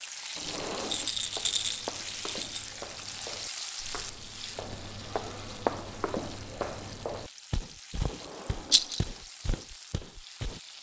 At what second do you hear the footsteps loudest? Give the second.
6 s.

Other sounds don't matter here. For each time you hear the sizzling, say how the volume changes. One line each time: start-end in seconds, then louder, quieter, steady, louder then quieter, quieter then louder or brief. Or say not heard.
0.0-10.7 quieter.